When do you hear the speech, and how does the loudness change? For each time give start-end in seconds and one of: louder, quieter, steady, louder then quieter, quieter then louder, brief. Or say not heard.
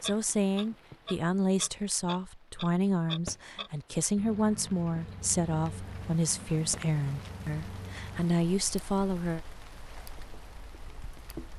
0.0-9.4 steady.